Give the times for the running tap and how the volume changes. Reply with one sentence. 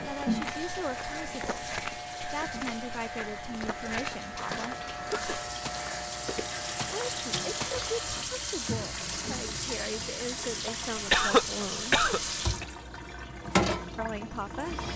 The running tap can be heard from 0.0 to 14.9 s, getting louder.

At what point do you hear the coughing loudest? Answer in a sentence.
The loudest moment of the coughing is at 11 seconds.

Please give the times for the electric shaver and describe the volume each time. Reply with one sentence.
You can hear the electric shaver from 0.0 to 8.2 s, at a steady volume.